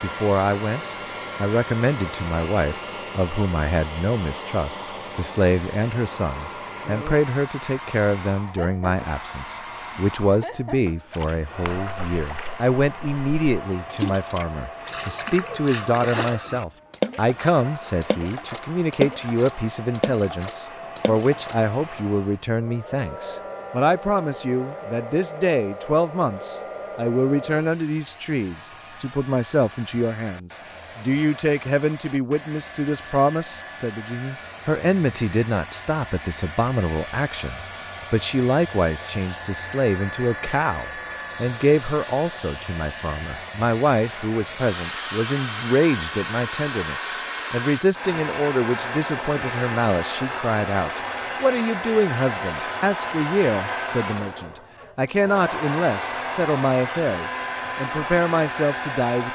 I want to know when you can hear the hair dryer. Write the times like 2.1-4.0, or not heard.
0.0-59.3.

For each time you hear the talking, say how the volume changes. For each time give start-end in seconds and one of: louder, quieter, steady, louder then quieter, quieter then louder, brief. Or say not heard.
0.0-59.3 steady.